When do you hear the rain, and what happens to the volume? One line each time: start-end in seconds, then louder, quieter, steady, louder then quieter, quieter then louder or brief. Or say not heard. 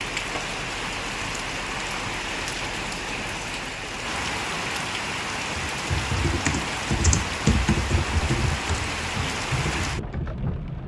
0.0-10.8 steady.